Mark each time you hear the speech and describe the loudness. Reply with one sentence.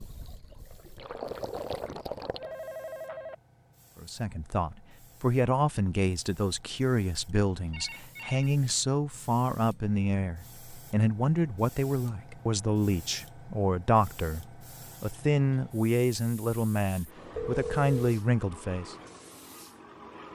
You can hear the speech from 4.0 to 18.9 s, at a steady volume.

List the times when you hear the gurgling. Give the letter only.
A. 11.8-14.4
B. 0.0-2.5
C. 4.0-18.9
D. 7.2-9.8
B.